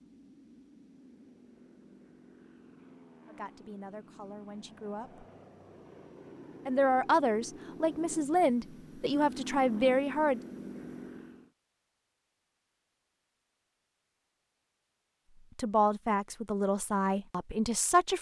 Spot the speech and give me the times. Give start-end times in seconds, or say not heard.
3.2-5.2, 6.7-10.4, 15.6-18.1.